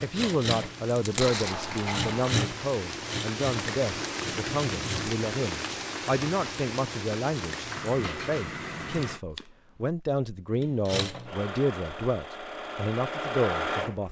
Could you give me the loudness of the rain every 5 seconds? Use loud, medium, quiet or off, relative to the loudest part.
loud, loud, off.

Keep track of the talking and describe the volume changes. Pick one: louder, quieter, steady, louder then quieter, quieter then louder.
steady.